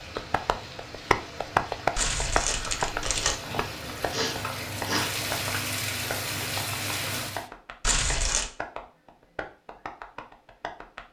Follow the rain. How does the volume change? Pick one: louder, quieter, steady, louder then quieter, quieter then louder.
louder.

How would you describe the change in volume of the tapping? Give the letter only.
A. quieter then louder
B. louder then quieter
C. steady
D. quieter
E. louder
D.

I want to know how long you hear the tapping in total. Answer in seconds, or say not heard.
11 s.